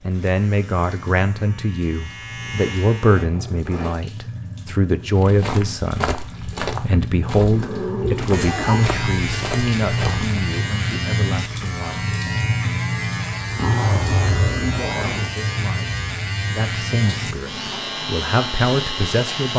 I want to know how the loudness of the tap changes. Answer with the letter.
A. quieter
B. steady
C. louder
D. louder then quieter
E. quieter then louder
D.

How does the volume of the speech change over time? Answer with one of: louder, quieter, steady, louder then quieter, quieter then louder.
quieter then louder.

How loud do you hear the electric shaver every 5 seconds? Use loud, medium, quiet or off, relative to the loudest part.
medium, loud, loud, loud.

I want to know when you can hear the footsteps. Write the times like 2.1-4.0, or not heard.
5.1-10.4.